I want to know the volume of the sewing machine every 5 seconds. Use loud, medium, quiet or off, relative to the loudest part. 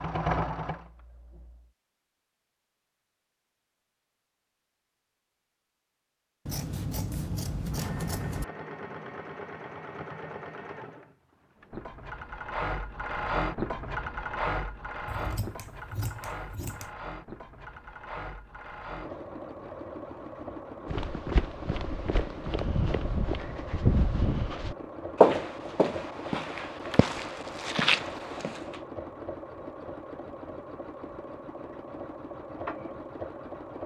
loud, medium, loud, medium, medium, medium, medium.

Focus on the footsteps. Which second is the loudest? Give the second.
25 s.